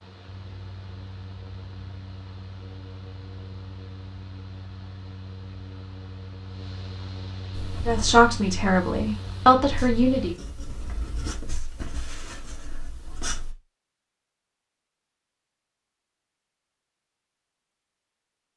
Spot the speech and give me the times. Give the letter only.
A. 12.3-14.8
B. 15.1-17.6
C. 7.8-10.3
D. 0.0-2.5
C.